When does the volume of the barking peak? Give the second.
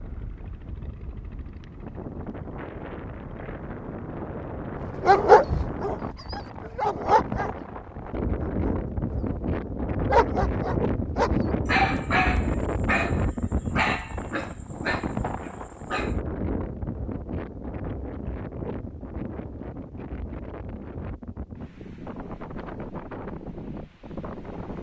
5 s.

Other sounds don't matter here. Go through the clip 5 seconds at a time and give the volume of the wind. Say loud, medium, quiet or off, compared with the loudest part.
medium, loud, loud, medium, medium.